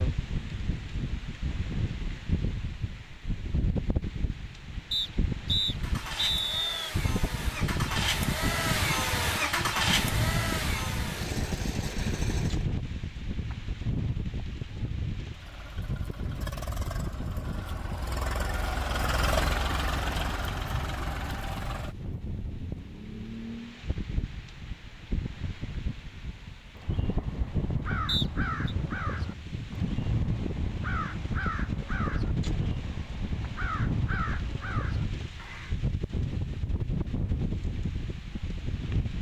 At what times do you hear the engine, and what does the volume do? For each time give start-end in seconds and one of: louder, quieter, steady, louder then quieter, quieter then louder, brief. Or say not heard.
5.7-12.7 louder then quieter
15.3-23.9 louder then quieter.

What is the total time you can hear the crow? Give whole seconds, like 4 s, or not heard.
9 s.